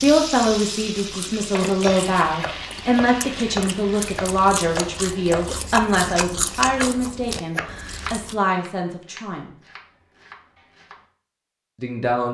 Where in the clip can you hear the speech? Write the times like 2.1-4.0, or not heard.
0.0-9.6, 11.8-12.3.